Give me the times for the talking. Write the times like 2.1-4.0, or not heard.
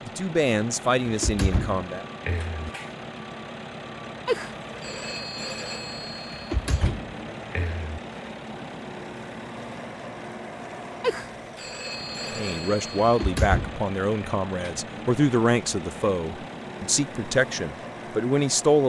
0.1-2.0, 12.3-18.8.